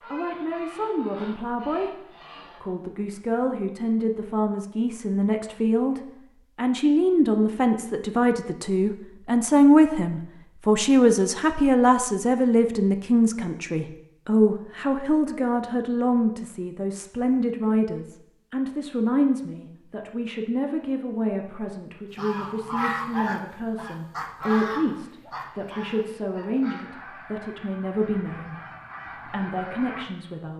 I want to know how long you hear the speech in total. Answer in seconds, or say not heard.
29 s.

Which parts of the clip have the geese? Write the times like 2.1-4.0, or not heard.
0.0-2.6, 22.1-30.1.